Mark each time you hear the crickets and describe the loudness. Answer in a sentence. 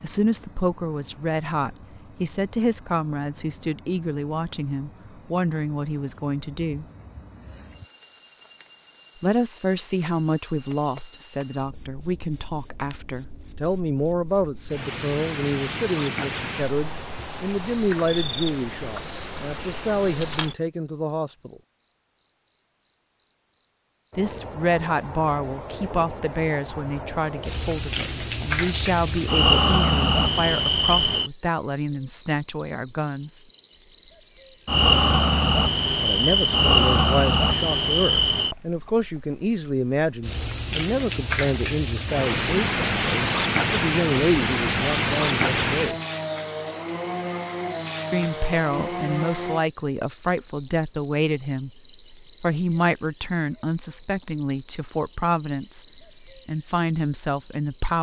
The crickets can be heard from 0.0 to 57.9 s, getting louder.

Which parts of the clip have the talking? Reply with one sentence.
You can hear the talking from 0.0 to 6.8 s, from 9.2 to 21.6 s, from 24.1 to 33.5 s, from 36.0 to 46.0 s and from 48.1 to 57.9 s.